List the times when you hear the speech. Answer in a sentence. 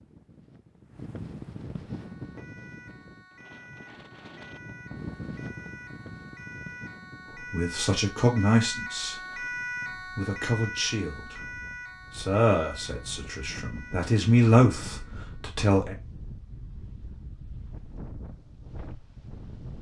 You can hear the speech from 7.3 to 11.4 s and from 12.1 to 15.9 s.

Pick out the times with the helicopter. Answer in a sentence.
You can't hear the helicopter here.